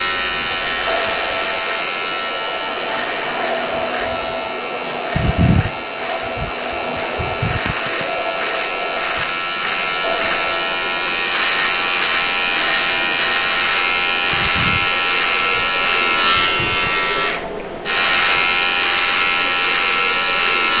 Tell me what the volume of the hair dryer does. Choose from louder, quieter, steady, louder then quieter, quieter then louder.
quieter.